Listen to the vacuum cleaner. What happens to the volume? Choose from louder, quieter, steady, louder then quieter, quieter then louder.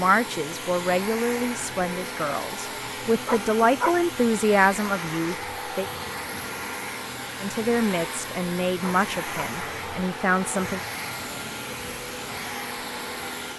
steady.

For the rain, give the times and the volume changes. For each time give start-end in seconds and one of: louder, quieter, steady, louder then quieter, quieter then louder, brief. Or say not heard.
not heard.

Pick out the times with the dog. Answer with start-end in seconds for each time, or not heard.
3.2-4.0, 8.8-9.5.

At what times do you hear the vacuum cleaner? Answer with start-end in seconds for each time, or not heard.
0.0-13.5.